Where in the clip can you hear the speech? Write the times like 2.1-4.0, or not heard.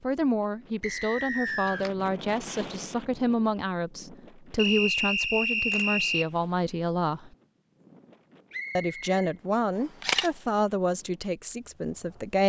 0.0-7.3, 8.8-12.4.